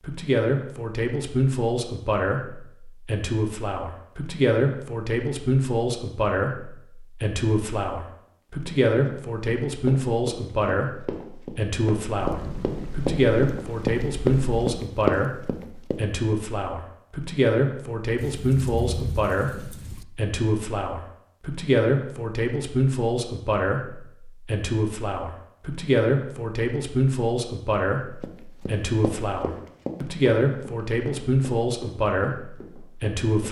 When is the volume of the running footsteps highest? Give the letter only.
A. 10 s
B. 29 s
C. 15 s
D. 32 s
C.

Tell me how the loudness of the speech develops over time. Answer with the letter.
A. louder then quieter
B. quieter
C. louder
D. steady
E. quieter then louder
D.